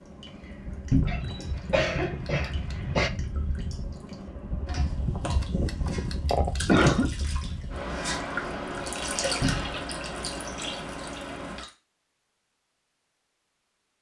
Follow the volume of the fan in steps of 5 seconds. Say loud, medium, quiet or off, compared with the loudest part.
medium, loud, loud.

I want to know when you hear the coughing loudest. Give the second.
7 s.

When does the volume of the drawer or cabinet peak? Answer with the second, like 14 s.
1 s.